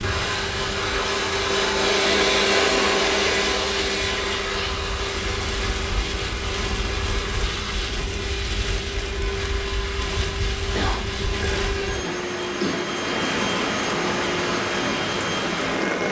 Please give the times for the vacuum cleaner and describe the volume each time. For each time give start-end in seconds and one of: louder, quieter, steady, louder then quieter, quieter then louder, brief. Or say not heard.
0.0-16.0 quieter.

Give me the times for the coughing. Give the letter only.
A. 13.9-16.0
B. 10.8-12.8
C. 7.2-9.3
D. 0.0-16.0
B.